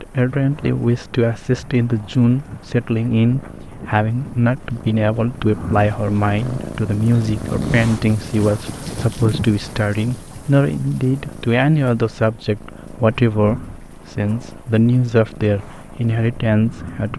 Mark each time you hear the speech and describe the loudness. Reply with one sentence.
You can hear the speech from 0.0 to 17.1 s, at a steady volume.